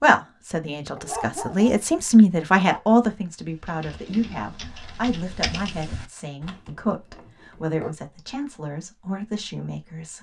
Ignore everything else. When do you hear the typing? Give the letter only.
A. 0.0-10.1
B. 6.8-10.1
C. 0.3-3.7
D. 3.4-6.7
D.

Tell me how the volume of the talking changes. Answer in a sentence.
The volume of the talking goes down.